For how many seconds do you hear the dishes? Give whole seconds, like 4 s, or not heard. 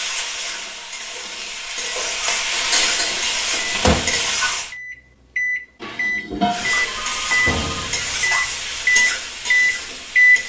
2 s.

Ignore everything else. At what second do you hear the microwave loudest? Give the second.
10 s.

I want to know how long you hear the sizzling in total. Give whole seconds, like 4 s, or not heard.
9 s.